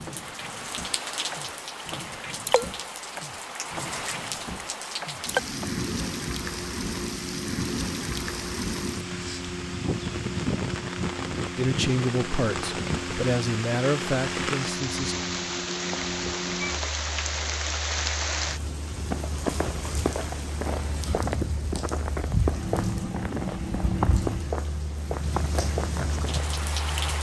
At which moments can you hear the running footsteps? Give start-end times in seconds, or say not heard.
19.1-26.5.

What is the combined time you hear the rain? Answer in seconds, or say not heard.
27 s.